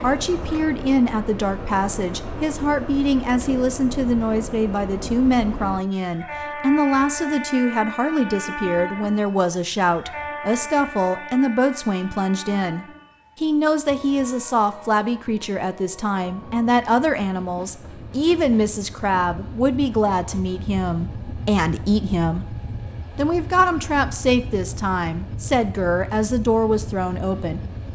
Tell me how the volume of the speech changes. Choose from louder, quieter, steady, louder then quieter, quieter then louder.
steady.